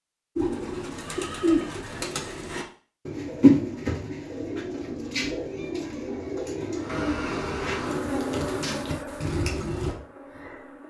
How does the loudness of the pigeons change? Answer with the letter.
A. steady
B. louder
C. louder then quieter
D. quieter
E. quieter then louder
C.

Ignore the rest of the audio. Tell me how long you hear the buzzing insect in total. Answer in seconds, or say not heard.
4 s.